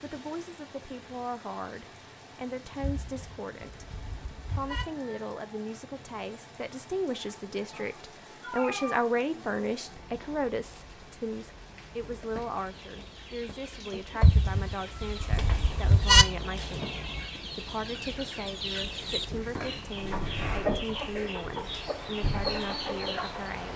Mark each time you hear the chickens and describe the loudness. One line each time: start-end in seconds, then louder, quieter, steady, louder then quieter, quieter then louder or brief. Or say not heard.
12.5-23.5 louder.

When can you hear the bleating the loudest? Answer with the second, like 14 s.
16 s.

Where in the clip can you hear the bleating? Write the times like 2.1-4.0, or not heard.
2.8-4.8, 14.2-16.2.